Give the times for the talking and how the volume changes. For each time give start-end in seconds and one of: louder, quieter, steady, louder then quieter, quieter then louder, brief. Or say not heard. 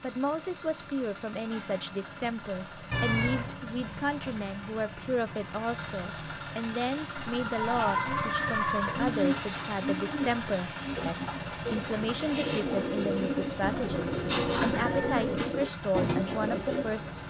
0.0-17.2 steady.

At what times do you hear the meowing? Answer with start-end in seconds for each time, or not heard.
2.9-3.5, 7.2-9.1, 13.6-15.5.